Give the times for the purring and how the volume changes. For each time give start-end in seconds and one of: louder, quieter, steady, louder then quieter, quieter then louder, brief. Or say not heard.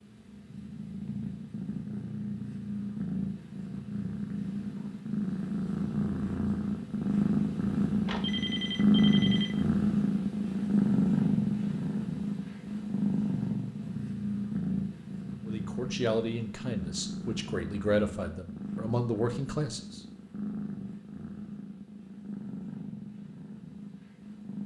0.0-24.6 louder then quieter.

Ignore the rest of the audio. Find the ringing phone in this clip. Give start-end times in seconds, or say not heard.
8.1-9.5.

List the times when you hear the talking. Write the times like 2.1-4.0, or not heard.
15.4-20.0.